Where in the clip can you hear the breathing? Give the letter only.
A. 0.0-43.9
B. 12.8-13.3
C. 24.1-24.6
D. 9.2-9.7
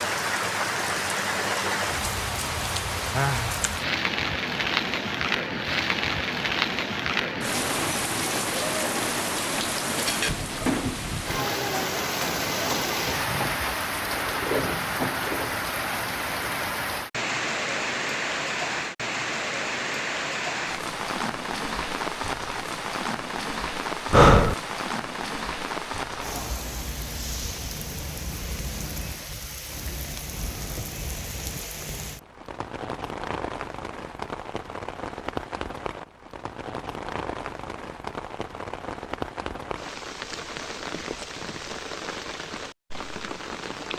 C.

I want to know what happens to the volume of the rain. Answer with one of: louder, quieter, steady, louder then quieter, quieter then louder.
quieter.